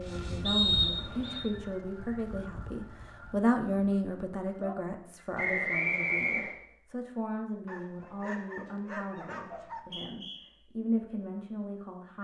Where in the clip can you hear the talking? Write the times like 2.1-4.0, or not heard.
0.0-12.2.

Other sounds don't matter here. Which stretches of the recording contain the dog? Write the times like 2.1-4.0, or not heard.
7.7-9.8.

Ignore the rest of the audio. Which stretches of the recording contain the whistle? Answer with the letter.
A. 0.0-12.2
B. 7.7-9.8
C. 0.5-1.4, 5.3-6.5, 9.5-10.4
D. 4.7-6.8
C.